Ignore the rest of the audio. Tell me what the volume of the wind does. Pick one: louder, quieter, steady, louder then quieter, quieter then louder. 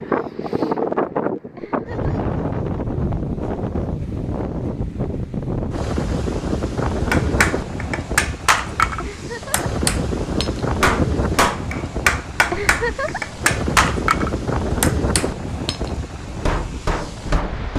steady.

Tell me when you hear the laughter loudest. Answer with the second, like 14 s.
13 s.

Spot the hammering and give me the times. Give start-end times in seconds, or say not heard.
7.1-17.7.